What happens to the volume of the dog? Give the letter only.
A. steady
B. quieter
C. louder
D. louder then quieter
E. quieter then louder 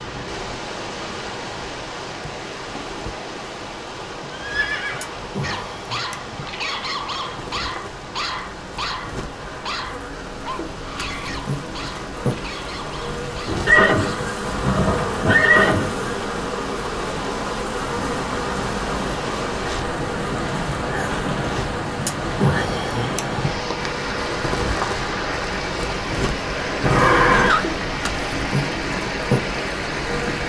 B.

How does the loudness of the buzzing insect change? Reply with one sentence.
The volume of the buzzing insect goes up.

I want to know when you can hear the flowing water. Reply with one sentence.
You can hear the flowing water from 0.0 to 30.4 s.